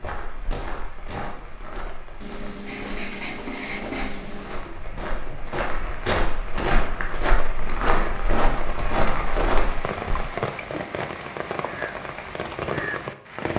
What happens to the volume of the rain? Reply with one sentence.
The volume of the rain goes up.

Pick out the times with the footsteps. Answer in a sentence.
The footsteps can be heard from 0.0 to 10.2 s.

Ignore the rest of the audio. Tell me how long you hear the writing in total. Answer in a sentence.
You can hear the writing for 2 seconds altogether.